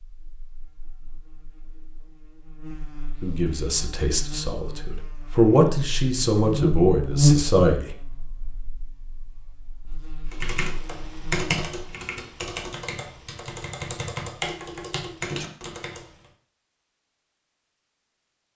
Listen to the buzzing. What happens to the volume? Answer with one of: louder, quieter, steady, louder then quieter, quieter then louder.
louder then quieter.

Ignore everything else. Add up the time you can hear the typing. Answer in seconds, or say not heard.
6 s.